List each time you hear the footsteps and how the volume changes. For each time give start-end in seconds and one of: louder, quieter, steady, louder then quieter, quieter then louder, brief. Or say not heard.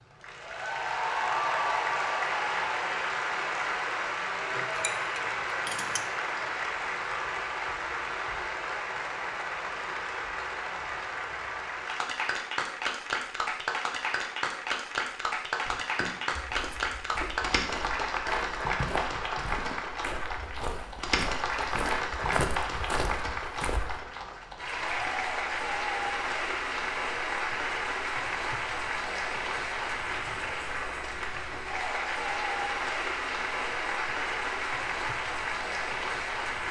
15.7-24.0 louder.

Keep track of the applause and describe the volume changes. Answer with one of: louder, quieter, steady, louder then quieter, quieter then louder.
steady.